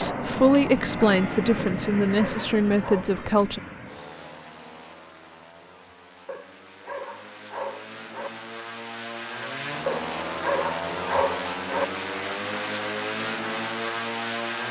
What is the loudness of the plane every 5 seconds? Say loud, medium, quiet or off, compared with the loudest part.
loud, medium, loud.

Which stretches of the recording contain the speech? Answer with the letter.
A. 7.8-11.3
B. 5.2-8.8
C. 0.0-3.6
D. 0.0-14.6
C.